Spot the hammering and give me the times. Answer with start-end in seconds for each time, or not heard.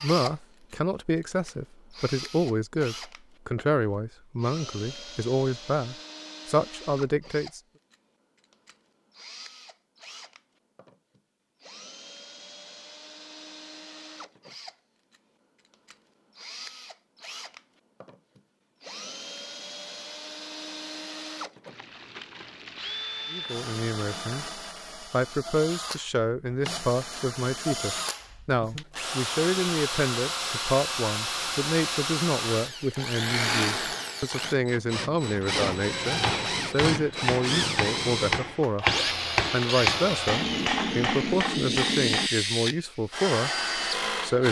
35.4-42.3.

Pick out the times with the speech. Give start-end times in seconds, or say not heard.
0.0-7.6, 23.3-44.4.